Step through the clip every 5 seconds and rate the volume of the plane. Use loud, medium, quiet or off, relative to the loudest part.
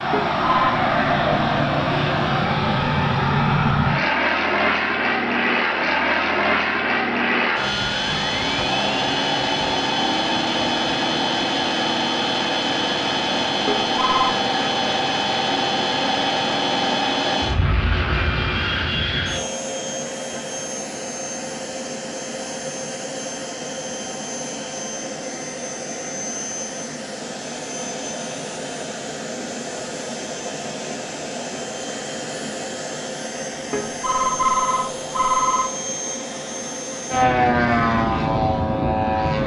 loud, loud, loud, loud, medium, medium, medium, loud.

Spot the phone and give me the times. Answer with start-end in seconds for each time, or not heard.
0.1-0.8, 13.7-14.4, 33.7-35.7.